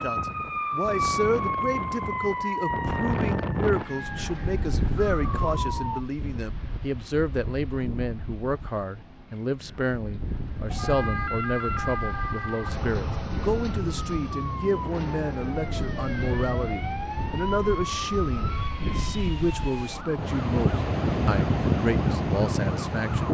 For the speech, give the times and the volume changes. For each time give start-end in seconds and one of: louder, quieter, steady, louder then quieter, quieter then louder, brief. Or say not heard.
0.0-23.2 steady.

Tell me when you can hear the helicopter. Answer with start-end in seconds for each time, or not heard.
not heard.